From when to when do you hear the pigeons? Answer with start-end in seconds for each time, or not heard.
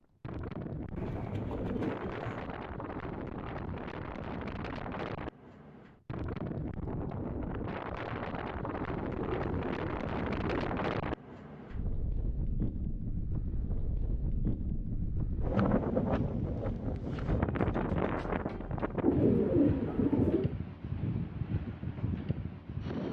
0.9-2.5, 9.1-10.8, 19.0-20.6.